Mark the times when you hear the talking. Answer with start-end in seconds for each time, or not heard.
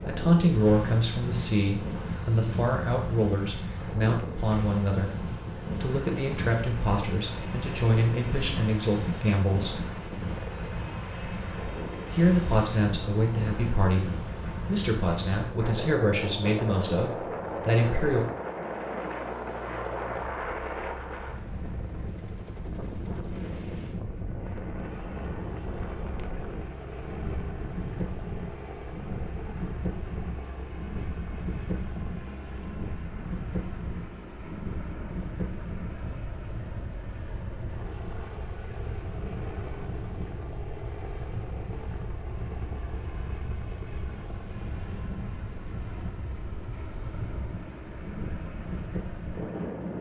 0.0-9.8, 12.1-18.2.